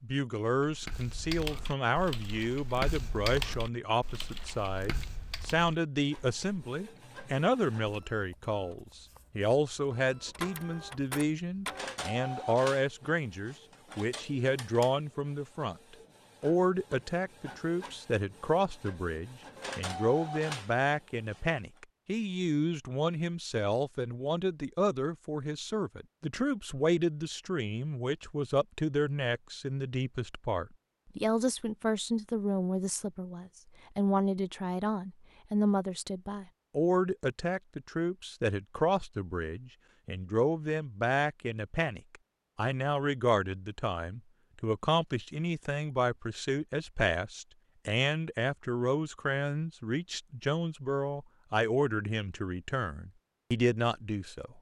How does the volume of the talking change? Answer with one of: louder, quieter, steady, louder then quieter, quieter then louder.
steady.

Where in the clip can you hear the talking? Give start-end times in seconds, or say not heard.
0.0-54.5.